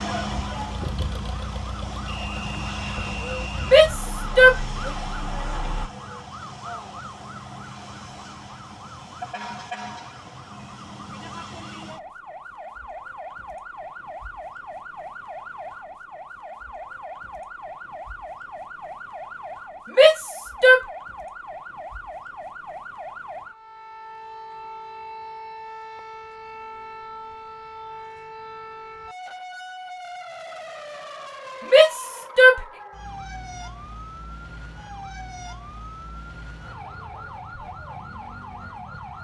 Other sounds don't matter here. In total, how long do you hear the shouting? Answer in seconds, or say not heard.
3 s.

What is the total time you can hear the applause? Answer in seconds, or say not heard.
not heard.